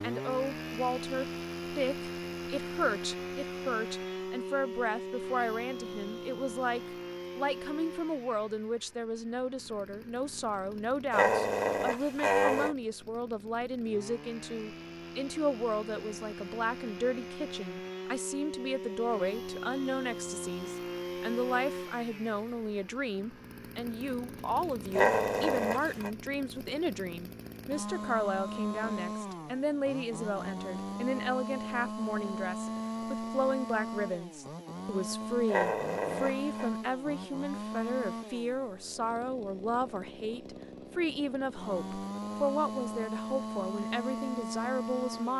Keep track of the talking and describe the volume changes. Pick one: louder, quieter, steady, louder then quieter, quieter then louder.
steady.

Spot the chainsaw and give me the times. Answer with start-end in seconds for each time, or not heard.
0.0-45.3.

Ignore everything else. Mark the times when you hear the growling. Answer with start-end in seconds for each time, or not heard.
11.1-12.8, 24.9-26.1, 35.5-36.7.